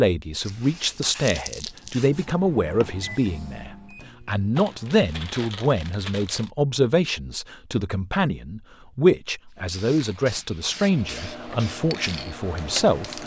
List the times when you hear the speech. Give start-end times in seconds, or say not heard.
0.0-13.2.